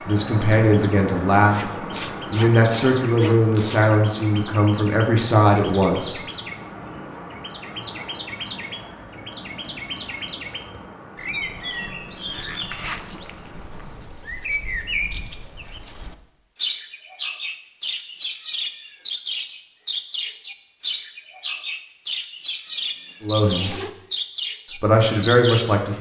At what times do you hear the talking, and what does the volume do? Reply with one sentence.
You can hear the talking from 0.1 to 6.2 s, at a steady volume; briefly from 23.2 to 23.8 s; and briefly from 24.8 to 25.9 s.